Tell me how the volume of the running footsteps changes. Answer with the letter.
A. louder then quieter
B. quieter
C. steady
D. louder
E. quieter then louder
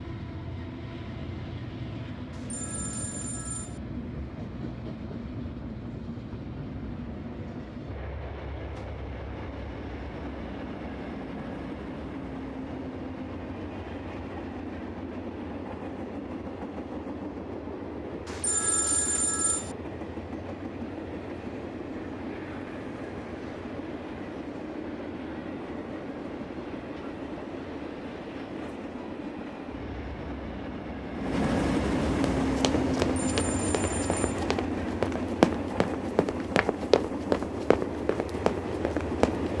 A.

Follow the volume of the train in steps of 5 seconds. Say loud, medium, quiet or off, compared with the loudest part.
medium, medium, medium, medium, medium, medium, loud, loud.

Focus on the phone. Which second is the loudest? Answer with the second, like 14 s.
19 s.